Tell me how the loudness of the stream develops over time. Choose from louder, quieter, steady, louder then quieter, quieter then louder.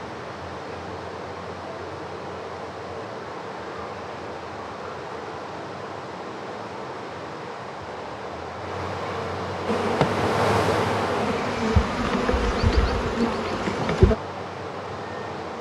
louder then quieter.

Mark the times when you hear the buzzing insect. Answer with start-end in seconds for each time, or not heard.
9.7-14.2.